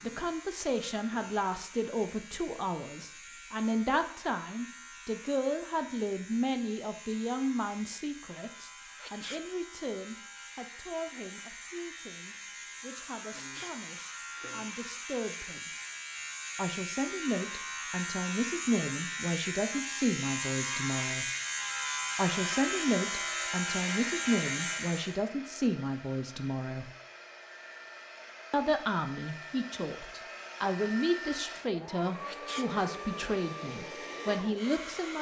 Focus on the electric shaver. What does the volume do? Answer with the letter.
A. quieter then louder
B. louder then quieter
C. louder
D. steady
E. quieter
C.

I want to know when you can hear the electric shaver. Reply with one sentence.
You can hear the electric shaver from 0.0 to 25.2 s.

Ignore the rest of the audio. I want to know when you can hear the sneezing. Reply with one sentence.
You can hear the sneezing from 8.9 to 9.4 s, from 13.3 to 13.8 s and from 32.2 to 32.7 s.